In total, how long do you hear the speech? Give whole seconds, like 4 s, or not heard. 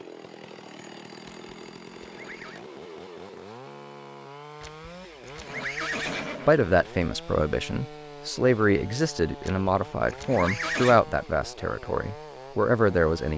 7 s.